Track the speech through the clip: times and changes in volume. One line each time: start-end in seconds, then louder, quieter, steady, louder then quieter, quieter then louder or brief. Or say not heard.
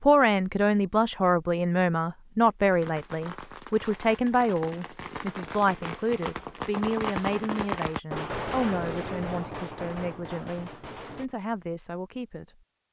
0.0-12.6 quieter.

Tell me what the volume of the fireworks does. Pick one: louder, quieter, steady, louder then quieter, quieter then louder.
louder then quieter.